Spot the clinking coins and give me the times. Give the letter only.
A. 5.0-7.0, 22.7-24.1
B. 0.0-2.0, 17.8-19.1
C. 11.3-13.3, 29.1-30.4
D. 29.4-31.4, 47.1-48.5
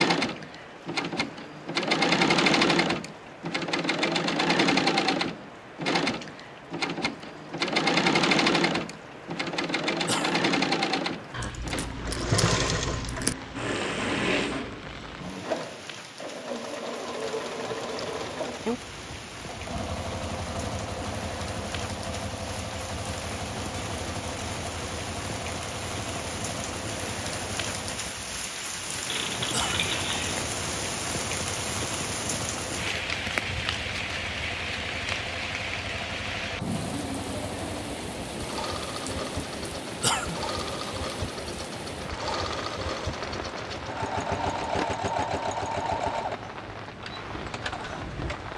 C.